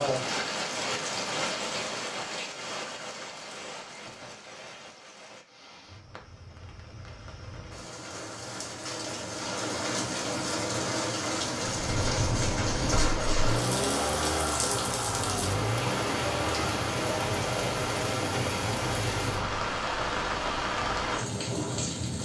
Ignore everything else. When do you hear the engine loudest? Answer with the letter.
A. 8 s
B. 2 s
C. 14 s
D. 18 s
C.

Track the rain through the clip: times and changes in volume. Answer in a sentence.
You can hear the rain from 0.0 to 22.2 s, getting quieter then louder.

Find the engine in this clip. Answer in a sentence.
You can hear the engine from 11.7 to 19.6 s.